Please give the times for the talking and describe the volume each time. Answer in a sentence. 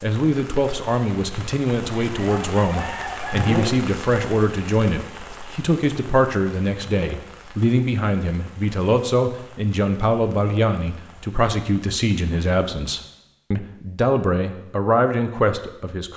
You can hear the talking from 0.0 to 16.1 s, at a steady volume.